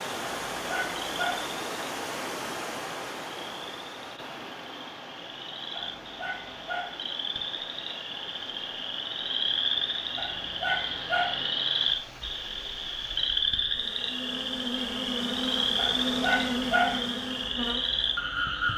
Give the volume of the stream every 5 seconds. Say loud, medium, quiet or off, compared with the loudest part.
loud, medium, medium, off.